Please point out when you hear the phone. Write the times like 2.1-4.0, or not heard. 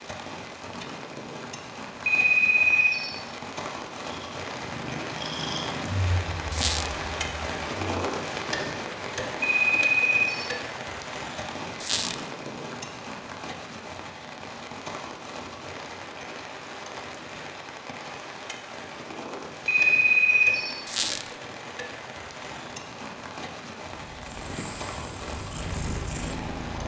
2.0-3.1, 9.4-10.5, 19.6-20.8.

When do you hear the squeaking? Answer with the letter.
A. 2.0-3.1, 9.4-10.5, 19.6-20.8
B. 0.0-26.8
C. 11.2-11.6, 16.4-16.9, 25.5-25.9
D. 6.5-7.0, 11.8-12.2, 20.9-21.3
D.